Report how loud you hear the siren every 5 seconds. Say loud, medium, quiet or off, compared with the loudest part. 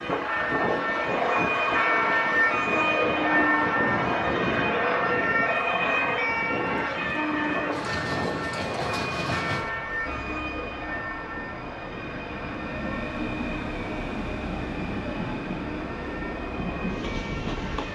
loud, loud, quiet, quiet.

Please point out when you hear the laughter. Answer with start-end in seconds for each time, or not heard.
not heard.